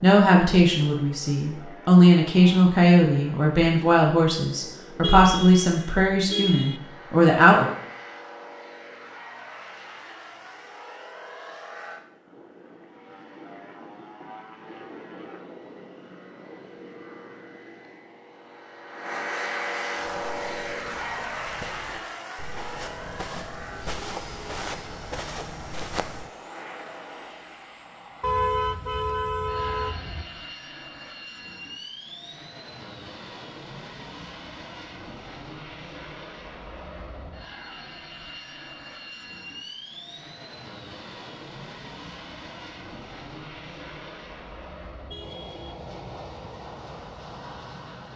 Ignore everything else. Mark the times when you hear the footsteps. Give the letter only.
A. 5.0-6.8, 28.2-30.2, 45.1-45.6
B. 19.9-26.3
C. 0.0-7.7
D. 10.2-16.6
B.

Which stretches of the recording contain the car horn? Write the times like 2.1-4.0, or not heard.
5.0-6.8, 28.2-30.2, 45.1-45.6.